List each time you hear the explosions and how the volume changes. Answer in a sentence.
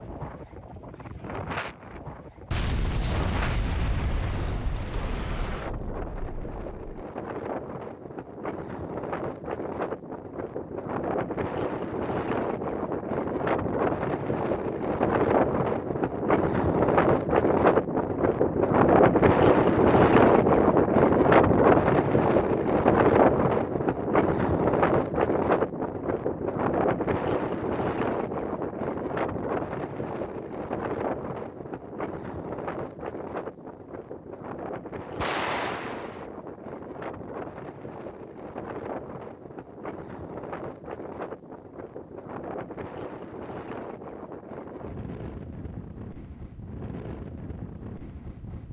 You can hear the explosions from 2.5 to 7.0 s, getting quieter; and briefly from 35.1 to 36.2 s.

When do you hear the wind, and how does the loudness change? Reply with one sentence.
The wind can be heard from 0.0 to 48.6 s, getting louder then quieter.